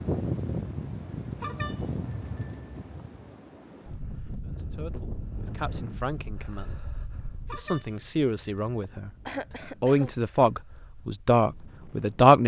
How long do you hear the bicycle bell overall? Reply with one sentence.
The bicycle bell can be heard for 3 seconds in total.